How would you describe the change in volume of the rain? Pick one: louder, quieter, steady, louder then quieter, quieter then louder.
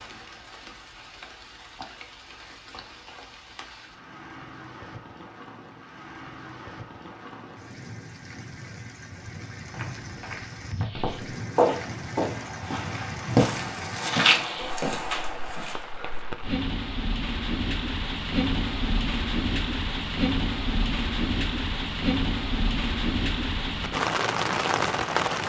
louder.